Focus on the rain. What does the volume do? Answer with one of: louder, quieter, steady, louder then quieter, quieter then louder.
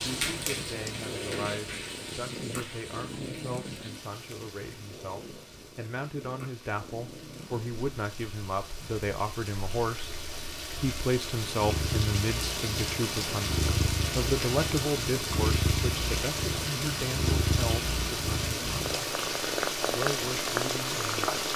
quieter then louder.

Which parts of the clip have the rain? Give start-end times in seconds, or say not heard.
0.0-21.5.